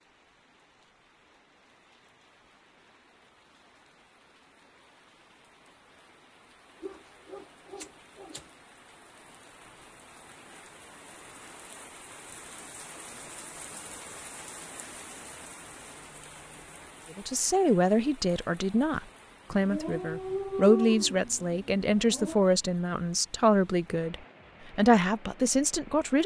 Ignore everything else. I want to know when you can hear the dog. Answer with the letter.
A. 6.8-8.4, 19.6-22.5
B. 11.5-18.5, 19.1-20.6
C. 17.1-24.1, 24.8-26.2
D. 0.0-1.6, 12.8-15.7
A.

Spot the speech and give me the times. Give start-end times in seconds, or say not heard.
17.1-24.1, 24.8-26.2.